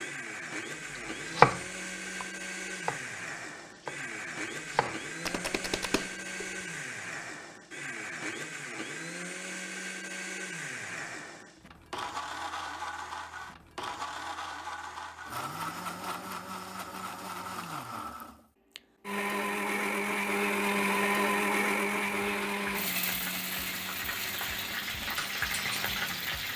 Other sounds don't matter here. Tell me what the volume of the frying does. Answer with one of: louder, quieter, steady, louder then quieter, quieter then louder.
louder.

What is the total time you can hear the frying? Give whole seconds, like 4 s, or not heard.
4 s.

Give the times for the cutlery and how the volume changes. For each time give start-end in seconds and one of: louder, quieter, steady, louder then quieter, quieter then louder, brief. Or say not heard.
not heard.